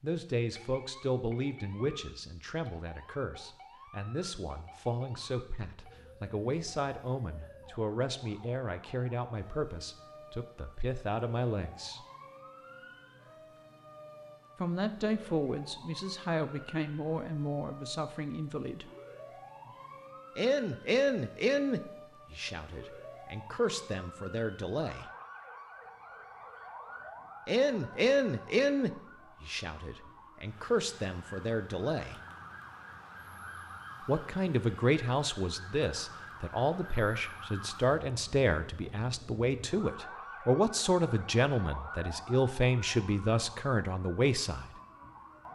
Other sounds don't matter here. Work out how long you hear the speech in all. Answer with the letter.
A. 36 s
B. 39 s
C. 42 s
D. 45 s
A.